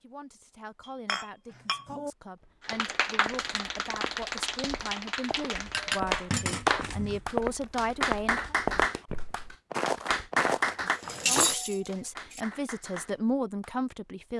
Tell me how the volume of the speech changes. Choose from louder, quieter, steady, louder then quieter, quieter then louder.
louder.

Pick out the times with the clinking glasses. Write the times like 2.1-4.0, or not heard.
1.1-2.1, 5.7-7.2, 10.9-12.4.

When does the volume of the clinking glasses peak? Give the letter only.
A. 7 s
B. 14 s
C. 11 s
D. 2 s
C.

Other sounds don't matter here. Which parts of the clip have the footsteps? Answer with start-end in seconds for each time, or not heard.
2.4-11.6.